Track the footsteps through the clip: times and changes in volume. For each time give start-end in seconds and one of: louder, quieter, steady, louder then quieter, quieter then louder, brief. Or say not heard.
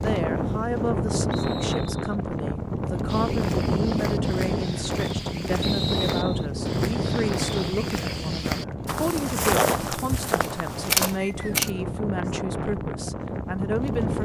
3.0-11.2 louder.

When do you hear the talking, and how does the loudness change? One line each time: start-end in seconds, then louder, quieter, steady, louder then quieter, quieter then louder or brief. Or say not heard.
0.0-14.2 steady.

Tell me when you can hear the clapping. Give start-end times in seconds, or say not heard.
not heard.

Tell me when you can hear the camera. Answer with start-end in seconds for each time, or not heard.
10.4-11.7.